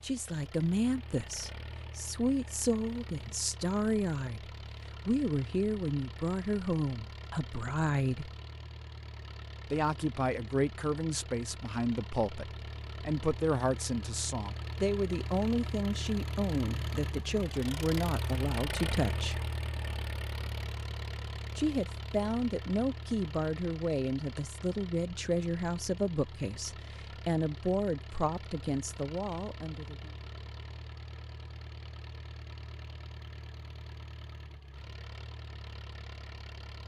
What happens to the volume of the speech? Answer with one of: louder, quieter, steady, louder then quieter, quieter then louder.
steady.